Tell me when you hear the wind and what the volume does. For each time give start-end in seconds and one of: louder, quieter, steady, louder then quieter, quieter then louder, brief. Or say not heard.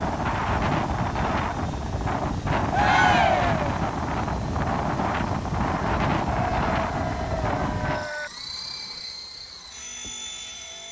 0.0-8.1 steady.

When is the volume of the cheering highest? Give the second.
3 s.